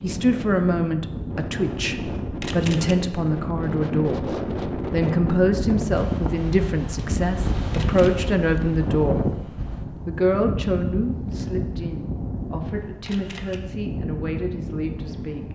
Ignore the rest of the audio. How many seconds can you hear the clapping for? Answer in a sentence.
You can't hear the clapping here.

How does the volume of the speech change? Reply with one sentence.
The volume of the speech goes down.